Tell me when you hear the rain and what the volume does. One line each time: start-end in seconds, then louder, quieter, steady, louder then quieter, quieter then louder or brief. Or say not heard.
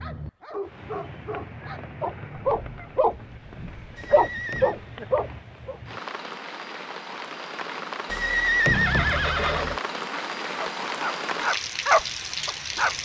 0.0-13.0 louder.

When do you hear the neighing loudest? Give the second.
9 s.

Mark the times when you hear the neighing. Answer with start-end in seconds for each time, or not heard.
4.0-4.8, 8.1-9.8.